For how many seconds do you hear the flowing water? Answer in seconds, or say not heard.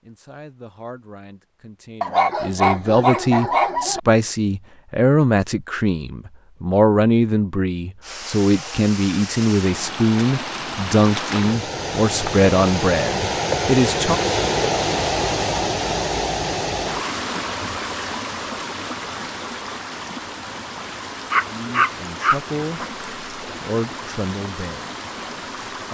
18 s.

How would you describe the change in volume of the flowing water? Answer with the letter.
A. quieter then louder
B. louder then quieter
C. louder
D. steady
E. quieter
B.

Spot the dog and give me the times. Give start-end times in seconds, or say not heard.
2.0-4.0, 21.3-22.9.